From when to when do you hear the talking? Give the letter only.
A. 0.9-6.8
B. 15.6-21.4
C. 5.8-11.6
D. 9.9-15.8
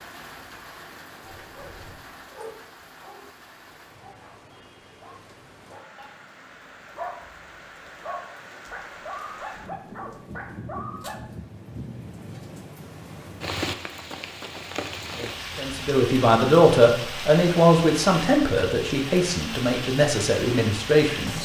B.